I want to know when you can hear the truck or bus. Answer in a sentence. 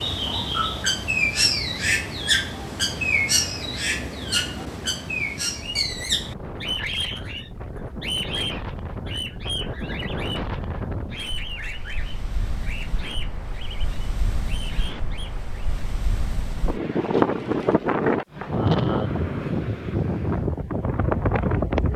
You can't hear the truck or bus here.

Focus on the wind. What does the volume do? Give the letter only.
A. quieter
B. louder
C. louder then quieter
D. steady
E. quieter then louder
B.